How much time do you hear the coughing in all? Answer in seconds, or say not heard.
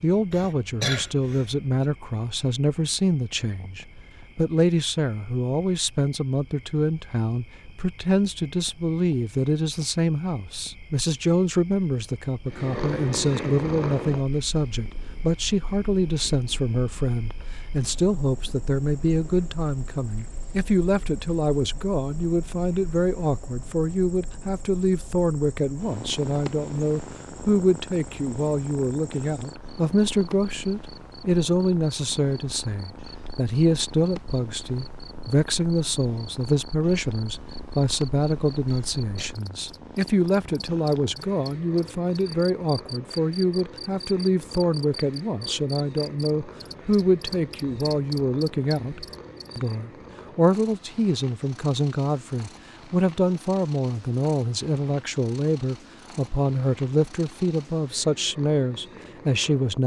2 s.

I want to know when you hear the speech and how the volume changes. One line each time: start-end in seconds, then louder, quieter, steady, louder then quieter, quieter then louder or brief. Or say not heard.
0.0-59.8 steady.